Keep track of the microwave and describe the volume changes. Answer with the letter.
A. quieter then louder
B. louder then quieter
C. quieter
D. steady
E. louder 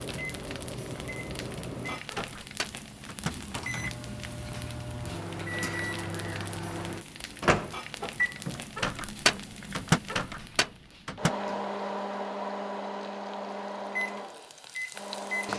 B.